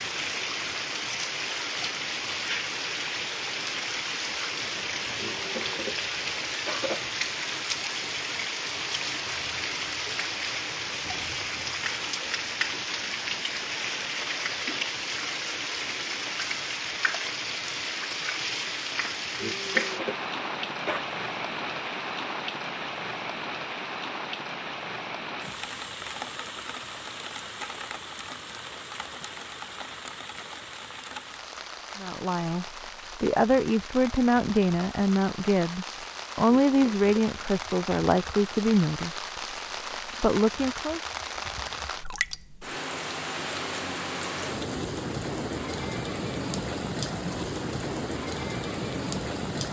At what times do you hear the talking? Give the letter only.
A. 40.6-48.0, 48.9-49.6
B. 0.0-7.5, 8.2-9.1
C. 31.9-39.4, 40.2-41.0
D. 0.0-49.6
C.